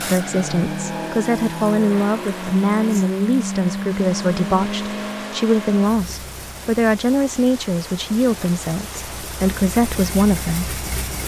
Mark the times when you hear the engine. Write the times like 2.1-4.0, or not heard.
0.0-11.2.